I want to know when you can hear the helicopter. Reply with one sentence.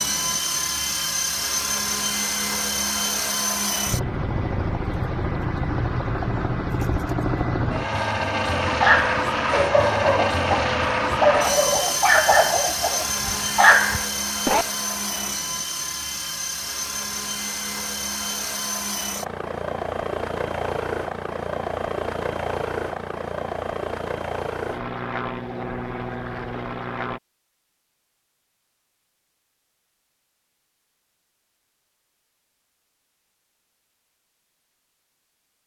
The helicopter can be heard from 0.0 to 27.2 s.